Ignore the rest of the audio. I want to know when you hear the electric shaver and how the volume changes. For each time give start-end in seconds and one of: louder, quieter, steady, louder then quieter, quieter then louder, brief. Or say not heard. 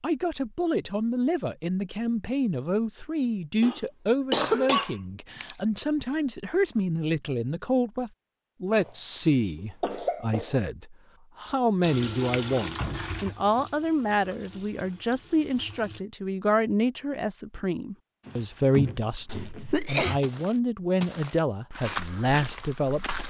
not heard.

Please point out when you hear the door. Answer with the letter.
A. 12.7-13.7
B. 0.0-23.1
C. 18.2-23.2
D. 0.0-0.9
A.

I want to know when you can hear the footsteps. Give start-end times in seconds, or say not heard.
18.2-23.2.